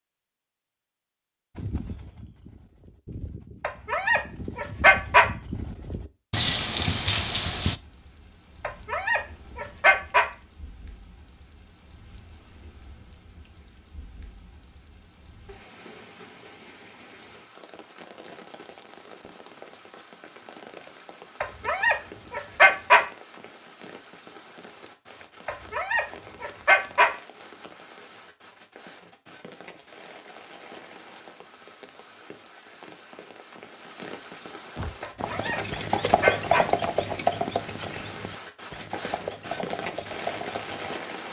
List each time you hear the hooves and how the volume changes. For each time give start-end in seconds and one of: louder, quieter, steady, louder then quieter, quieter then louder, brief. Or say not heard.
1.6-7.8 louder
34.8-41.0 louder then quieter.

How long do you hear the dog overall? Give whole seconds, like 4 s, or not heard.
8 s.